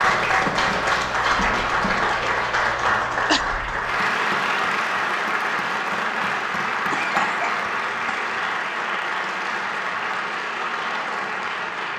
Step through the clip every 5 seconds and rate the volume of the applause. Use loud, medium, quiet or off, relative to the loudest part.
loud, loud, medium.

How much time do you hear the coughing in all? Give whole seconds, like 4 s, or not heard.
2 s.